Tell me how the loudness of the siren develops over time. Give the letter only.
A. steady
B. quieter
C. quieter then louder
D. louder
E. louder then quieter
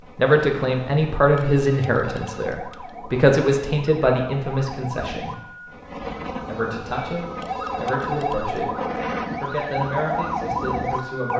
D.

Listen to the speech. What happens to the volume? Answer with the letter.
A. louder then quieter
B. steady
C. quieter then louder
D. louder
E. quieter
E.